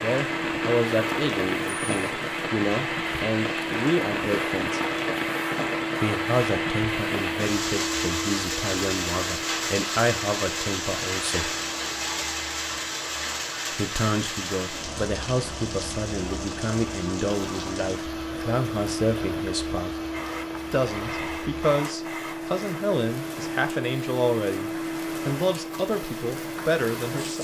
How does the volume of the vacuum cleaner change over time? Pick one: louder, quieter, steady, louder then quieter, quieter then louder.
quieter then louder.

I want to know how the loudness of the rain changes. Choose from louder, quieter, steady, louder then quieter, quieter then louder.
quieter.